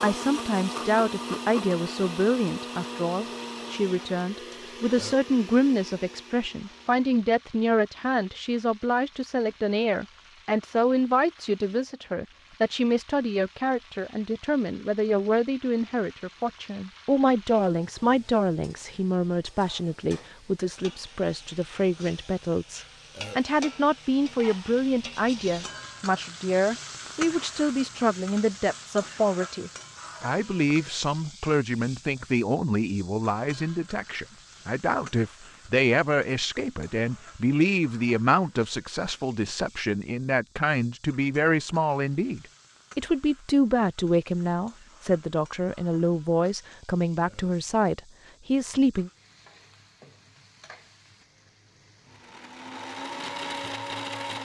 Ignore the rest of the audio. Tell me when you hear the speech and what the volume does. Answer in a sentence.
You can hear the speech from 0.0 to 49.1 s, at a steady volume.